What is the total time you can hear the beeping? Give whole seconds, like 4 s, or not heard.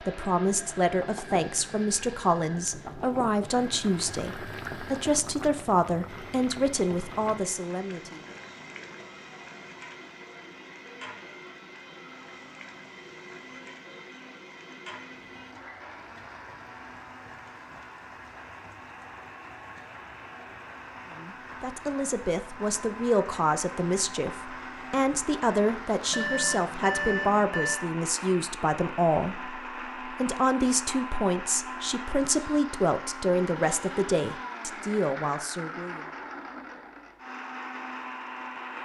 2 s.